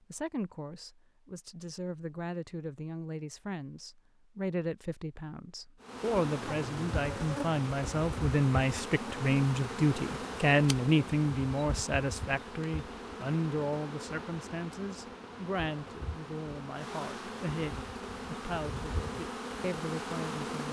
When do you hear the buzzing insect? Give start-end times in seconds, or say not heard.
5.8-20.6.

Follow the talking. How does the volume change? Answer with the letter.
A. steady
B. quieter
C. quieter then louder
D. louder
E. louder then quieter
E.